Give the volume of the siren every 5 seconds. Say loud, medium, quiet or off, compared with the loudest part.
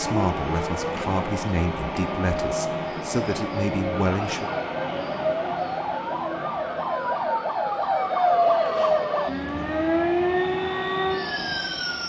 medium, loud, loud.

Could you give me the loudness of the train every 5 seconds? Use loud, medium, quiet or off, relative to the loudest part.
loud, medium, loud.